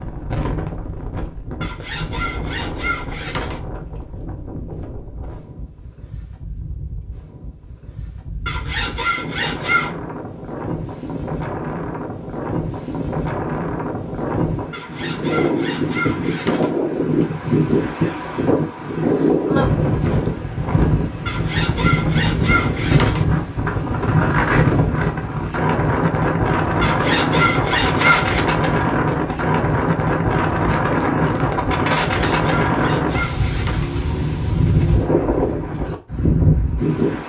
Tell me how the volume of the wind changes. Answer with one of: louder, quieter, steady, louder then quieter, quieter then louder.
louder.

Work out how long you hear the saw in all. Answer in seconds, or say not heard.
11 s.